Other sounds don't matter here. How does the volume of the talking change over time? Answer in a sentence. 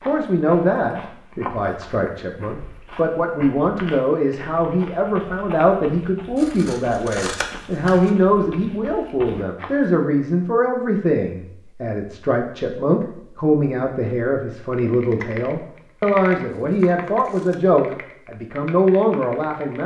The volume of the talking stays about the same.